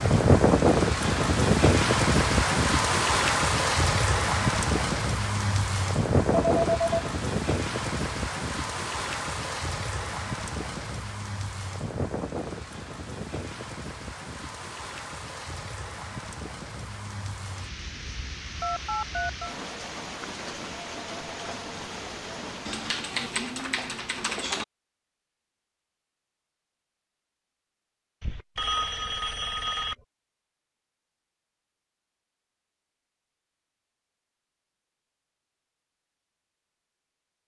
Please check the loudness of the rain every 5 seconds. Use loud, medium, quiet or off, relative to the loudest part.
loud, medium, quiet, quiet, quiet, off, off, off.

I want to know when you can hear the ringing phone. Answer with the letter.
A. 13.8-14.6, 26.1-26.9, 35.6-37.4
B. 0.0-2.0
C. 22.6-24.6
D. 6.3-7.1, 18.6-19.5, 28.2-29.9
D.